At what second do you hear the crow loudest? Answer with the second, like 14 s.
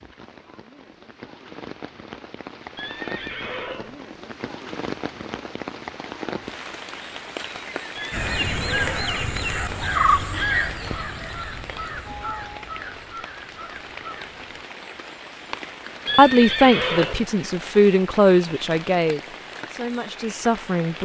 10 s.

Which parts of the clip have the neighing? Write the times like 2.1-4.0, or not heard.
2.8-4.0, 8.0-8.9, 16.1-17.2.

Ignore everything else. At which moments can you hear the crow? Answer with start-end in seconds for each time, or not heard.
8.1-14.7.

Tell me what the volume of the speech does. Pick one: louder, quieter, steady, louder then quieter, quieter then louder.
quieter.